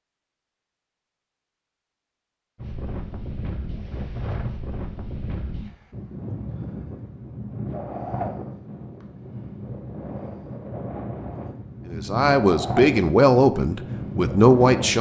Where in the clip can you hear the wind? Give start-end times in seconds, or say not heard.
2.5-14.9.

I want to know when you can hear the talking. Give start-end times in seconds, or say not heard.
11.8-14.9.